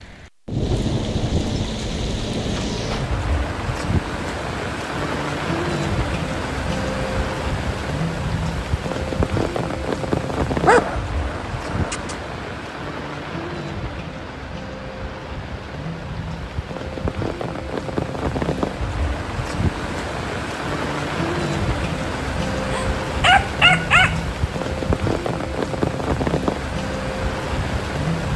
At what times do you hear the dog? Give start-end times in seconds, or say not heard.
10.7-12.2, 22.6-24.2.